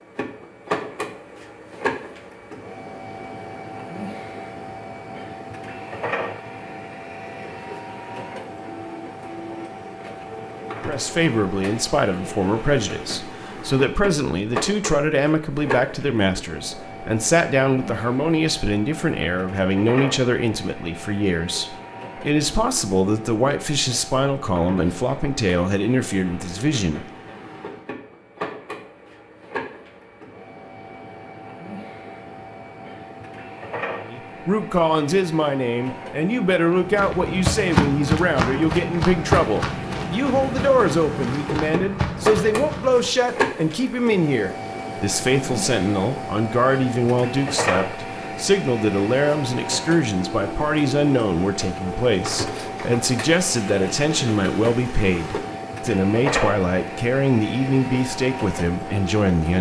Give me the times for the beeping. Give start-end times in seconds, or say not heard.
not heard.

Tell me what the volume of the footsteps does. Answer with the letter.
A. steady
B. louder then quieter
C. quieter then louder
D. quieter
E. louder
D.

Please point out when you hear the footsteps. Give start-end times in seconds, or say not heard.
36.8-43.2.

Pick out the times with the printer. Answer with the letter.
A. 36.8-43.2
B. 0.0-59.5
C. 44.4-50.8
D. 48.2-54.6
B.